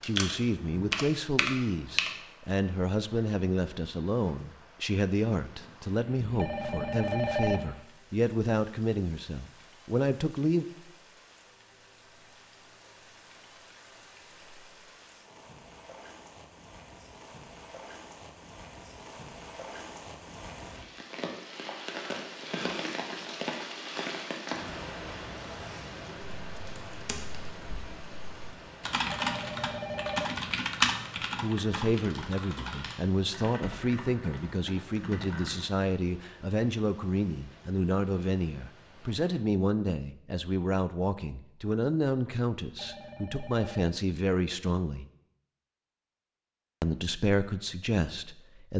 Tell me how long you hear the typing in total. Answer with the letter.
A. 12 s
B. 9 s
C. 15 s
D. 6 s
A.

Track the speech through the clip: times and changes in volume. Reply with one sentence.
You can hear the speech from 0.0 to 10.7 s, at a steady volume; from 31.4 to 45.0 s, at a steady volume; and briefly from 46.8 to 48.7 s.